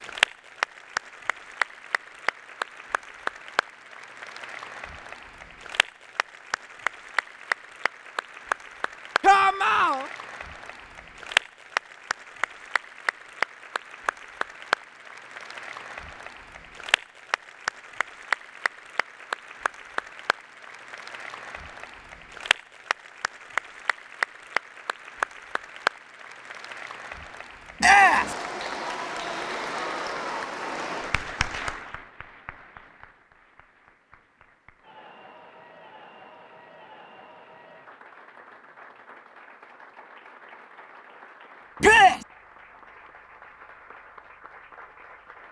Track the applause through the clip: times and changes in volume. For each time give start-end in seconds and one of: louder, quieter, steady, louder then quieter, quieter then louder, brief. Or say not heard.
0.0-45.4 quieter.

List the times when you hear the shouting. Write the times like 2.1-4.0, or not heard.
9.2-10.1, 27.8-28.4, 41.8-42.2.